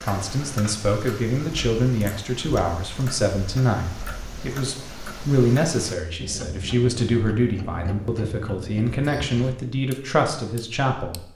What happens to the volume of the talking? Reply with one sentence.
The volume of the talking stays about the same.